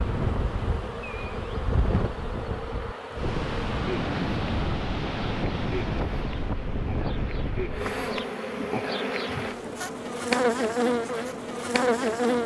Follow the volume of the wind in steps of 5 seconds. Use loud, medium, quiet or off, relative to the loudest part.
loud, loud, off.